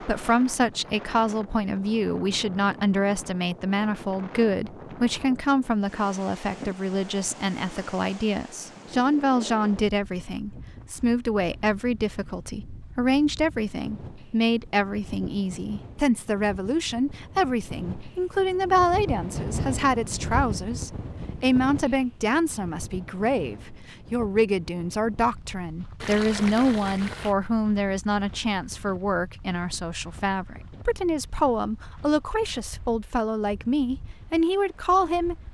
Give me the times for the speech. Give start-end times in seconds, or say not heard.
0.0-35.4.